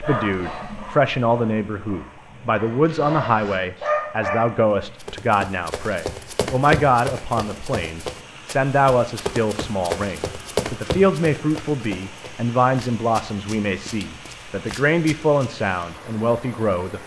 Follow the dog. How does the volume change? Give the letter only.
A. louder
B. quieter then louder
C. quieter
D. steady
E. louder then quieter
B.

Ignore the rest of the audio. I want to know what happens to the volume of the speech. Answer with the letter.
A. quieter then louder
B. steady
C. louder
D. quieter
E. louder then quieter
B.